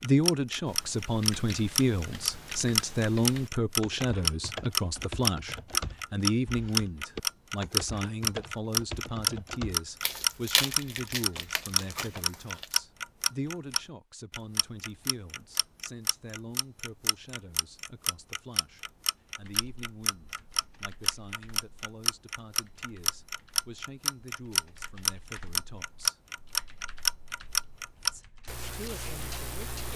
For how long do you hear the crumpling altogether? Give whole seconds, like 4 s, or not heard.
3 s.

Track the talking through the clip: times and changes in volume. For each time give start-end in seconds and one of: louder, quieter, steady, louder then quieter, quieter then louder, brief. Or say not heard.
0.0-26.2 quieter
28.1-29.8 brief.